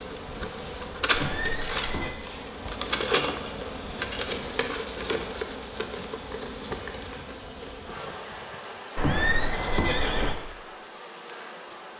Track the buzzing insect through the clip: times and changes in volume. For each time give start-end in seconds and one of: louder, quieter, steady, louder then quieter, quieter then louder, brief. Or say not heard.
0.0-11.9 quieter.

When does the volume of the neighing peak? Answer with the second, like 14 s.
9 s.